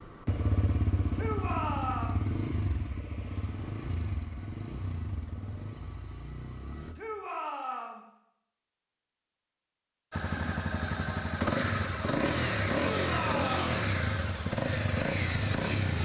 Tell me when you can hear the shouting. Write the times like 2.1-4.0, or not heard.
1.1-2.2, 7.0-8.1, 12.8-13.8.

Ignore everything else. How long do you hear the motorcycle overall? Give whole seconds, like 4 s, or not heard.
13 s.